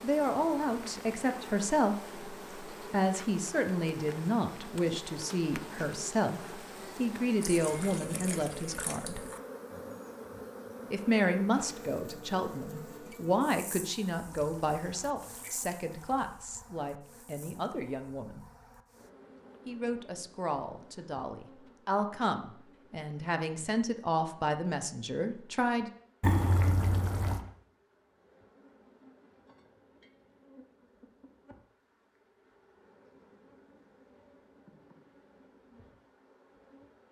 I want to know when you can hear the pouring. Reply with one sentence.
The pouring can be heard from 7.4 to 9.4 s, from 14.2 to 16.2 s and from 26.2 to 27.4 s.